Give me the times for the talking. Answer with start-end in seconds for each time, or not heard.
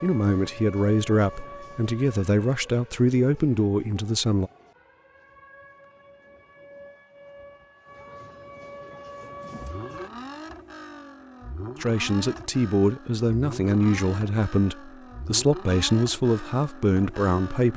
0.0-4.5, 11.8-17.7.